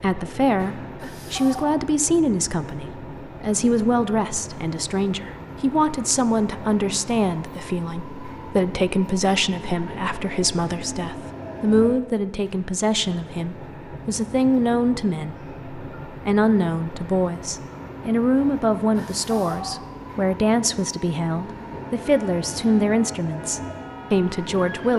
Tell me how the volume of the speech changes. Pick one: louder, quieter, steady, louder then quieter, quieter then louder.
steady.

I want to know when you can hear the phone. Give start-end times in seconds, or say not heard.
1.0-1.8, 18.9-19.8.